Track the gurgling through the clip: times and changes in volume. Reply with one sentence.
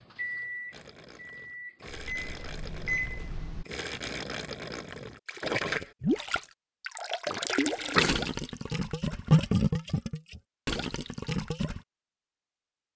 The gurgling can be heard from 0.7 to 11.8 s, getting louder.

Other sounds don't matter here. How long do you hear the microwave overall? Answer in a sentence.
You can hear the microwave for 4 seconds altogether.